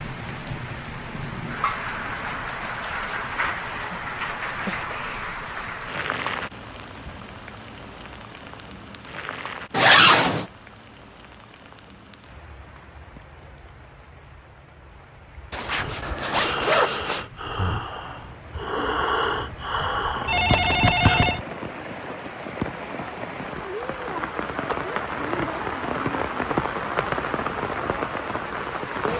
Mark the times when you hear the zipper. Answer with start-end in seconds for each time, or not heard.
9.7-10.4, 15.5-17.2.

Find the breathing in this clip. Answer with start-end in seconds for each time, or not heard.
15.8-21.2.